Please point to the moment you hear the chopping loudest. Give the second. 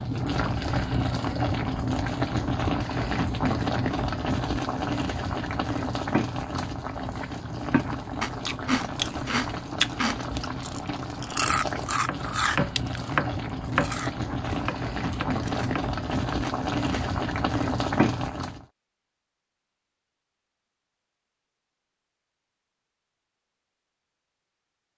13 s.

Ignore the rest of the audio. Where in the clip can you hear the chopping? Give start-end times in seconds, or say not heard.
11.4-16.4.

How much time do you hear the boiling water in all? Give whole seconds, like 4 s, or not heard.
19 s.